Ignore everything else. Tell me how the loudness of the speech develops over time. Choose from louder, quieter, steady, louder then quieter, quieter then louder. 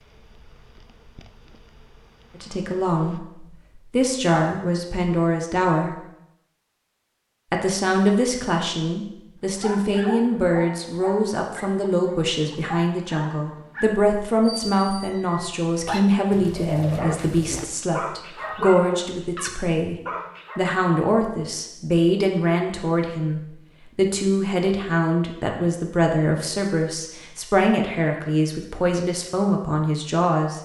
steady.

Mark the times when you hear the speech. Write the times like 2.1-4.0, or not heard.
2.4-6.0, 7.5-19.9, 20.6-30.5.